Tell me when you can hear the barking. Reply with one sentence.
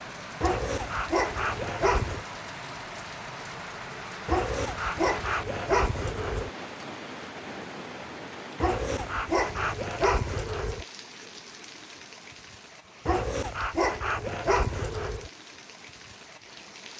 You can hear the barking from 0.4 to 2.2 s, from 4.2 to 6.5 s, from 8.6 to 10.8 s and from 13.1 to 15.3 s.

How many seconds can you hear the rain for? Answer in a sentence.
You can hear the rain for 17 seconds altogether.